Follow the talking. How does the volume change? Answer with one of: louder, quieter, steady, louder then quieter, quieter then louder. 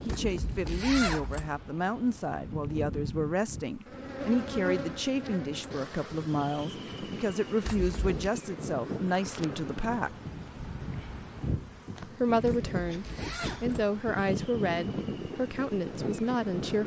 steady.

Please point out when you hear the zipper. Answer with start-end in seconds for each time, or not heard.
0.1-1.5, 7.7-8.2, 12.4-13.8.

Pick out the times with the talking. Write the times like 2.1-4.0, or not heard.
0.1-10.2, 12.2-16.8.